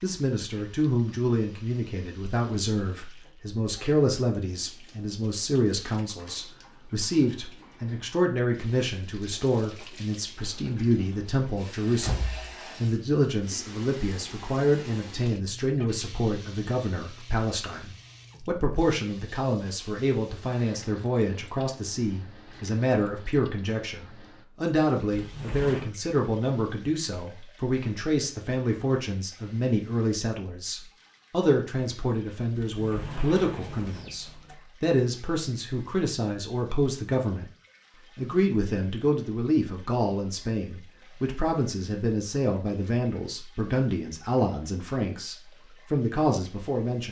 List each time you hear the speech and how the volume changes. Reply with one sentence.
The speech can be heard from 0.0 to 37.5 s, at a steady volume; and from 38.1 to 47.0 s, at a steady volume.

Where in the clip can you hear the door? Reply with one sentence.
You can hear the door from 12.0 to 12.6 s, from 25.1 to 25.9 s and from 32.5 to 34.5 s.